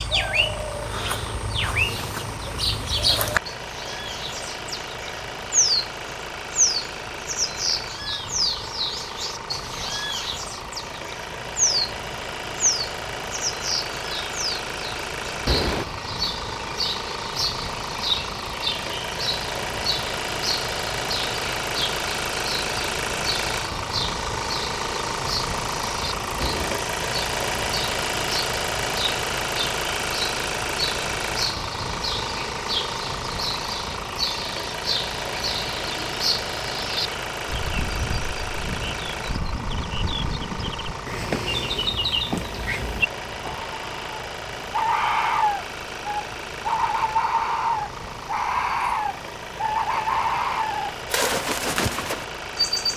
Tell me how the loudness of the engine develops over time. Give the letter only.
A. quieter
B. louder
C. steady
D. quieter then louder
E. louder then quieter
E.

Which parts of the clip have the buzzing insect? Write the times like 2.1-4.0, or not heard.
not heard.